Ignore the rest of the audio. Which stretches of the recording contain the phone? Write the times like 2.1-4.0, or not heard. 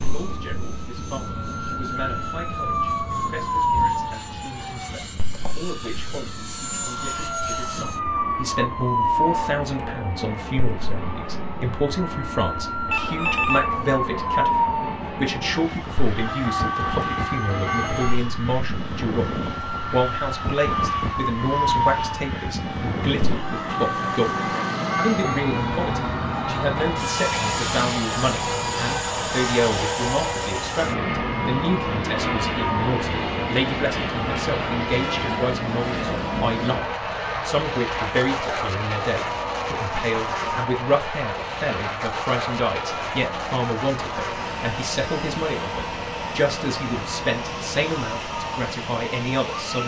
12.9-13.7.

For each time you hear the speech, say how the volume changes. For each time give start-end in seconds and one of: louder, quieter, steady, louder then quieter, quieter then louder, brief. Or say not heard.
0.0-19.2 louder
19.9-36.9 steady
37.5-49.8 steady.